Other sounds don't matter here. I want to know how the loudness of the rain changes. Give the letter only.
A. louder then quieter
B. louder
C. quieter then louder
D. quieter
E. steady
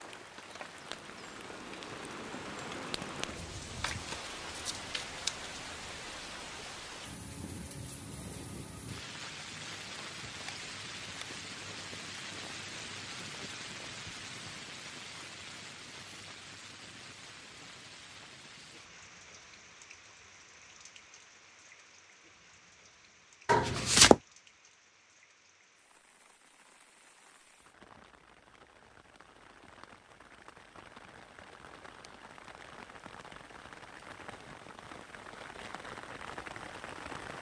C.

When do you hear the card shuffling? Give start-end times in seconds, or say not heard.
3.8-5.5, 23.4-24.2.